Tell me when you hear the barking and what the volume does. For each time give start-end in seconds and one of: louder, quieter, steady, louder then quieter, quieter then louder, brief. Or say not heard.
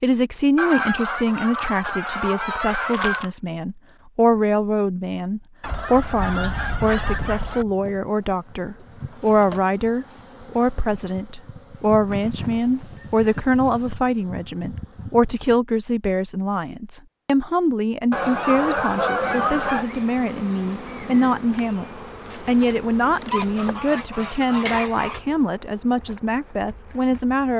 not heard.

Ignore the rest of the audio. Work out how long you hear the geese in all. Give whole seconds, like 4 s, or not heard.
10 s.